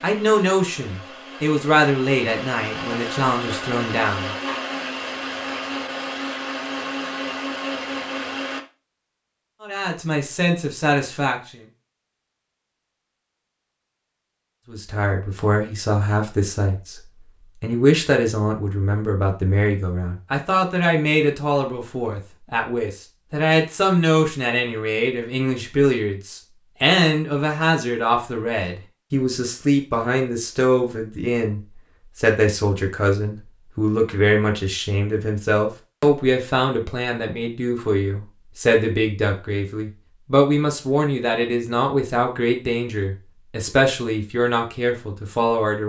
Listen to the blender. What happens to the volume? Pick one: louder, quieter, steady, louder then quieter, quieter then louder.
louder.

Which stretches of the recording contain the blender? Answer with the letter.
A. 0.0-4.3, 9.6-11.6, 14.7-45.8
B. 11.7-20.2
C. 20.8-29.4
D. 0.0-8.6
D.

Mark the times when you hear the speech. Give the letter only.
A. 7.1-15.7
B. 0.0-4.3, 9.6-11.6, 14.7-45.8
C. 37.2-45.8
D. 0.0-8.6
B.